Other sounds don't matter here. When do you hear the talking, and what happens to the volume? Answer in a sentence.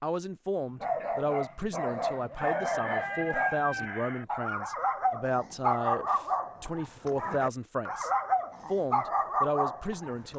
You can hear the talking from 0.0 to 10.3 s, at a steady volume.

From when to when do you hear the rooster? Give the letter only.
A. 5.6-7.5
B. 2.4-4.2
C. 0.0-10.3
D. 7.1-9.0
B.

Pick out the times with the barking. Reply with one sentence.
You can hear the barking from 0.8 to 10.3 s.